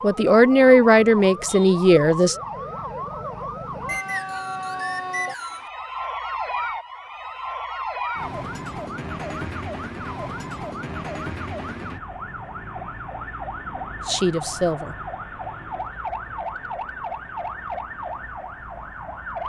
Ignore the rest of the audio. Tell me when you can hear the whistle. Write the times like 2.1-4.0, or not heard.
3.9-5.7.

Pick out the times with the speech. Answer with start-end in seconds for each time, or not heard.
0.0-2.4, 14.1-14.9.